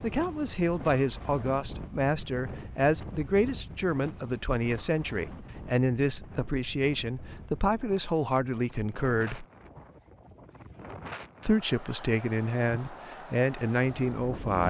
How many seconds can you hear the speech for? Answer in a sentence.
You can hear the speech for 13 seconds altogether.